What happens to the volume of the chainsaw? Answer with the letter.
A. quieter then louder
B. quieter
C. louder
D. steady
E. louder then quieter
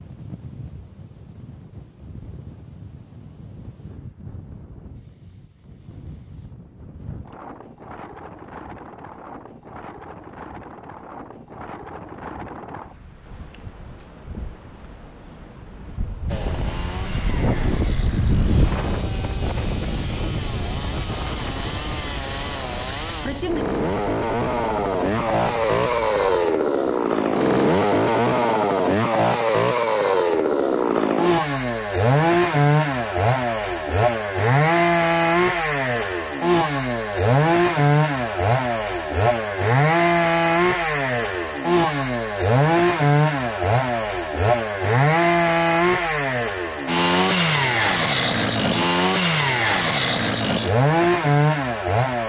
C.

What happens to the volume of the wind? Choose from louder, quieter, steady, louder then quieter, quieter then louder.
louder then quieter.